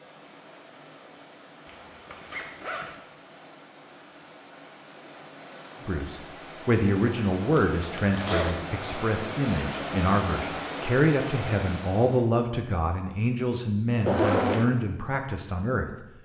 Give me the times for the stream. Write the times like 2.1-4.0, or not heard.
0.0-12.2.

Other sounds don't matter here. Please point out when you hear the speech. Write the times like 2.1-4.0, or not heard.
5.8-16.1.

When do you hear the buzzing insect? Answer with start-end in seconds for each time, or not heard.
not heard.